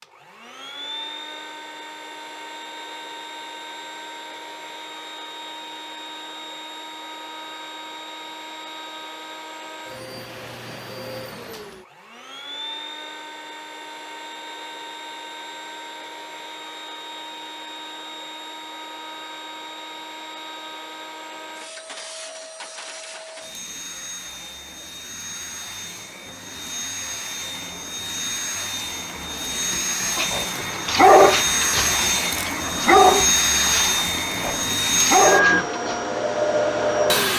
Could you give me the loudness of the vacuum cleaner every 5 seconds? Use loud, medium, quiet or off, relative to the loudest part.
quiet, quiet, quiet, quiet, quiet, medium, loud, loud.